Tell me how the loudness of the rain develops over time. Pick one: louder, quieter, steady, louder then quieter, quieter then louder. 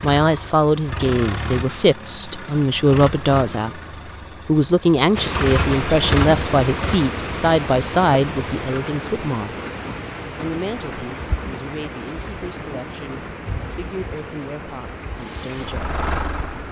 quieter.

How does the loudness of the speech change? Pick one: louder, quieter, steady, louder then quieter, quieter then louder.
quieter.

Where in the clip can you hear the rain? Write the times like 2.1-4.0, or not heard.
5.1-16.6.